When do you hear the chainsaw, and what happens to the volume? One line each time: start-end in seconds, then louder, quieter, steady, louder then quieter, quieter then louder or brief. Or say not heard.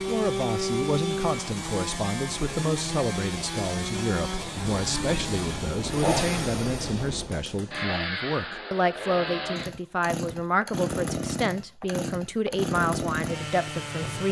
0.0-14.2 steady.